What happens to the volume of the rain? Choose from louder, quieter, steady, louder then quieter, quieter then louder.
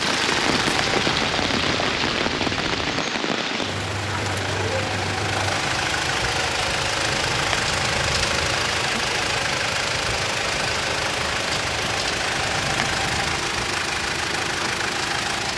quieter.